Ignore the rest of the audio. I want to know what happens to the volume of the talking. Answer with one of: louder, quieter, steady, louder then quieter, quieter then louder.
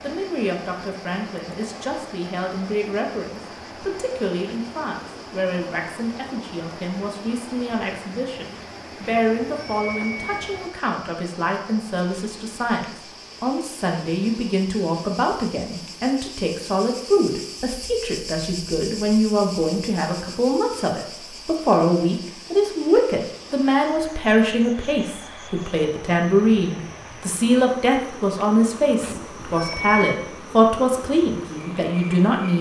louder.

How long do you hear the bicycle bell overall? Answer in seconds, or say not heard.
3 s.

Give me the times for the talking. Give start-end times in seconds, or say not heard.
0.0-32.5.